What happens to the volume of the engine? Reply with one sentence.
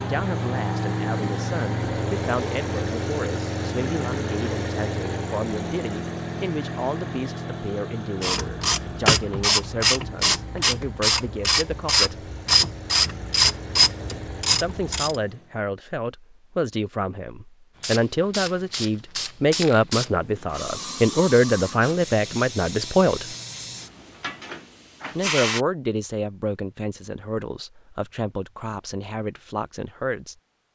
The volume of the engine goes down.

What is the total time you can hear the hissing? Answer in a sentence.
You can hear the hissing for 8 seconds altogether.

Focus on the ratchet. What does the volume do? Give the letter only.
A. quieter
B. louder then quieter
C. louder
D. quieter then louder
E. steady
E.